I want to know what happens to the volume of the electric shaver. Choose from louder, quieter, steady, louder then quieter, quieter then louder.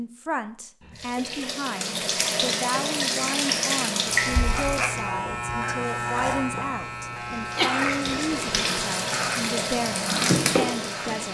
quieter.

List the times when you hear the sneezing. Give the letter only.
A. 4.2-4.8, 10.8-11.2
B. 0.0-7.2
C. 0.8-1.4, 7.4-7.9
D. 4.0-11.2
C.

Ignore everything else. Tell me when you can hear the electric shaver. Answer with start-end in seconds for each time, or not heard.
4.0-11.2.